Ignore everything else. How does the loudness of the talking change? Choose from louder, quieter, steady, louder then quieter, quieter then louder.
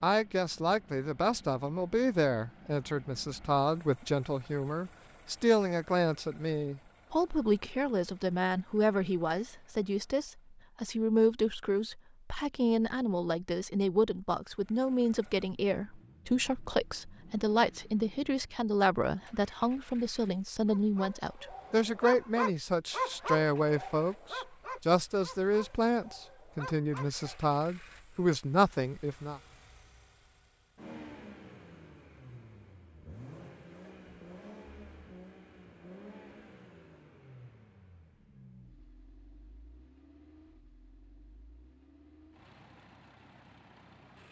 steady.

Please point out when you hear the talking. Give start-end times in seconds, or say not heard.
0.0-29.4.